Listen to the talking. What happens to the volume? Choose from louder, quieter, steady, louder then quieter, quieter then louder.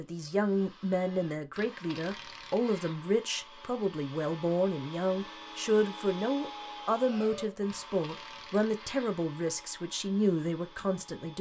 steady.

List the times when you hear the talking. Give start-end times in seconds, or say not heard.
0.0-11.3.